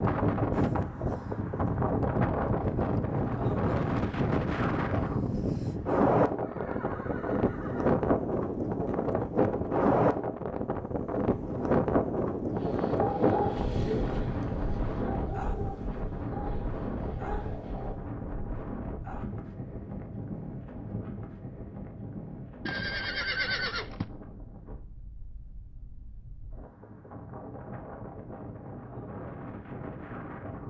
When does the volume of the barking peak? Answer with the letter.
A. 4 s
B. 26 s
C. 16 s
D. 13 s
D.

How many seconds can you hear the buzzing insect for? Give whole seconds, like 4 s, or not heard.
not heard.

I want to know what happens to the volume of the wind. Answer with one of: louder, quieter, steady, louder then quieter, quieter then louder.
quieter.